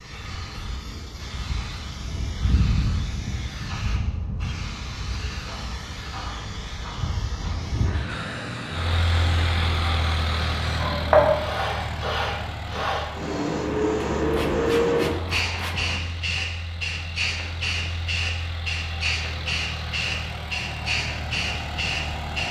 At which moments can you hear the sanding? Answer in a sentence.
The sanding can be heard from 14.2 to 16.0 s.